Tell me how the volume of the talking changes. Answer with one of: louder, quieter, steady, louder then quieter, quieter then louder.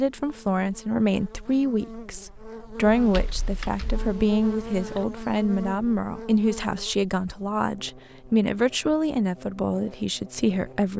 steady.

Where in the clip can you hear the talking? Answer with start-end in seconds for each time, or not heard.
0.0-10.9.